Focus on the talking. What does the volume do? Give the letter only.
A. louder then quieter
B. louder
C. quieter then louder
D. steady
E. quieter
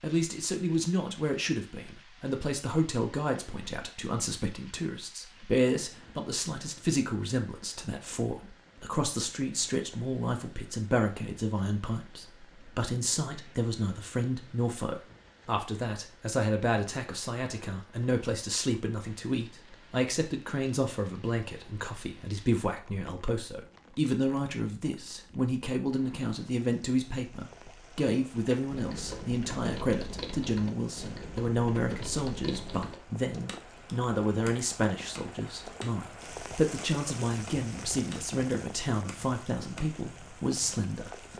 D.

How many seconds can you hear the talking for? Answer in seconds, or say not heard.
41 s.